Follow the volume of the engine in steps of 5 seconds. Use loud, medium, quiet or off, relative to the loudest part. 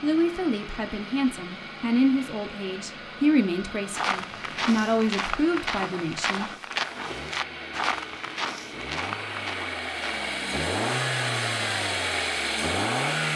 quiet, medium, loud.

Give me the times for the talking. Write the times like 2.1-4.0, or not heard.
0.0-6.5.